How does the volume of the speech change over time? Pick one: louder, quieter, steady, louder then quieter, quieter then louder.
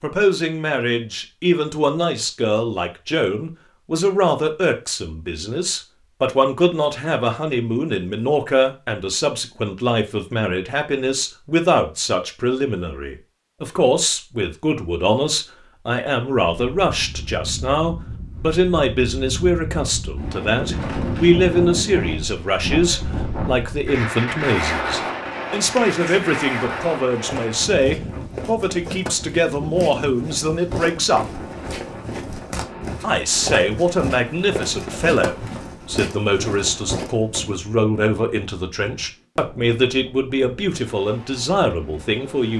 steady.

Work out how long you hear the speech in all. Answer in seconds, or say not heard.
41 s.